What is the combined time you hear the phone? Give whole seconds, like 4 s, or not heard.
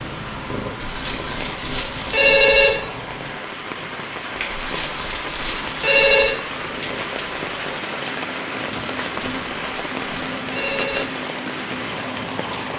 6 s.